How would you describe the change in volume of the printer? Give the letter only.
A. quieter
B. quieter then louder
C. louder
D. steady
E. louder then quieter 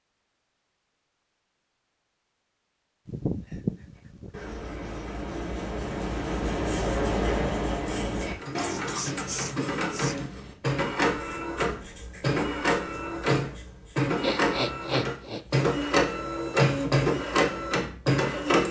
C.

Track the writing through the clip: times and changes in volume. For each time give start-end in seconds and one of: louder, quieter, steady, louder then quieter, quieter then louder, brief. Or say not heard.
4.0-14.1 louder then quieter.